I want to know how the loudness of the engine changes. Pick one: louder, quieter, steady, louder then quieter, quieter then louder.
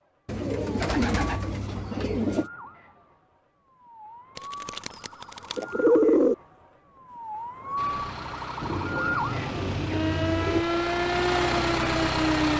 louder.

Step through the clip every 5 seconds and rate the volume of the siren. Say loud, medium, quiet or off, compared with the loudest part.
quiet, medium, loud.